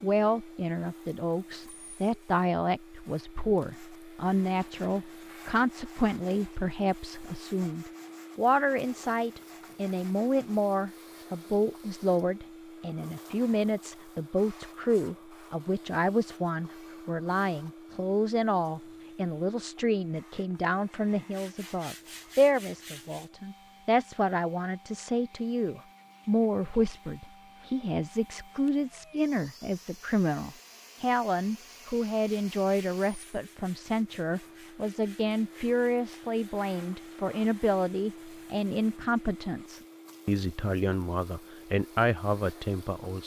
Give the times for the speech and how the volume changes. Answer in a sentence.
You can hear the speech from 0.0 to 43.2 s, at a steady volume.